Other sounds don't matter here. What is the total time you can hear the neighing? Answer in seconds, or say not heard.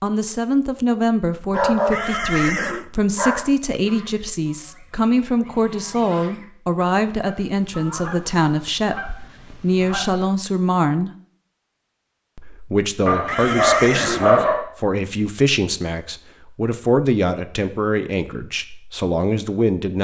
2 s.